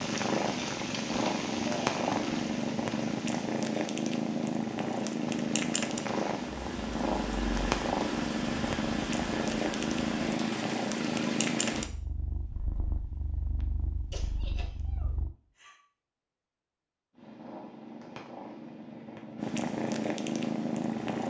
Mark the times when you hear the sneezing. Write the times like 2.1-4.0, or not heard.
14.1-15.8.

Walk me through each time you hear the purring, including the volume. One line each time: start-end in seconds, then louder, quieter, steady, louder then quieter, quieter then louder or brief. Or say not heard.
0.0-15.3 quieter
17.1-21.2 louder.